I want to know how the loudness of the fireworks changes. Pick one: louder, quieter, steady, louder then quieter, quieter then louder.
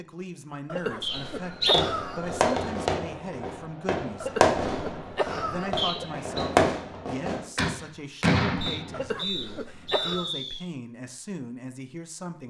quieter then louder.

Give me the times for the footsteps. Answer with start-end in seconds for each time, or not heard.
not heard.